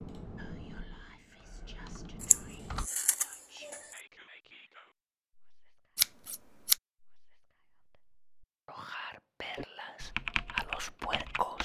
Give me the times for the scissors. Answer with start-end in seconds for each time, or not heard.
2.2-4.0, 6.0-6.8.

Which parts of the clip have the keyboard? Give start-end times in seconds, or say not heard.
0.0-2.9, 9.6-11.6.